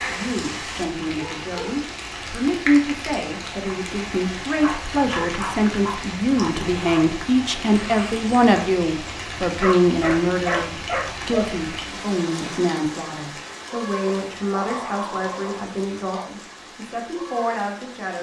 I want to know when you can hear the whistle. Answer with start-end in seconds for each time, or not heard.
not heard.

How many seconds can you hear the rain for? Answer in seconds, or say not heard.
18 s.